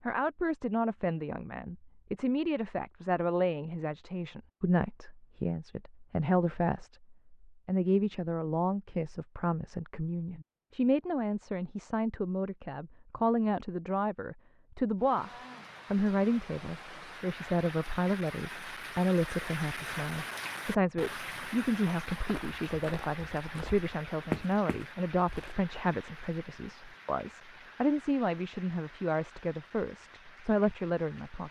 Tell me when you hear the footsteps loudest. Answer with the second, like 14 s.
24 s.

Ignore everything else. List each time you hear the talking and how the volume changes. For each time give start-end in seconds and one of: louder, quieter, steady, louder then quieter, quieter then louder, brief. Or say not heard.
0.1-15.3 steady
15.9-31.4 steady.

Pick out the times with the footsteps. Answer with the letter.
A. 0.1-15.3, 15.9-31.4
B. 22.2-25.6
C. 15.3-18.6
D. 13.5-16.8
B.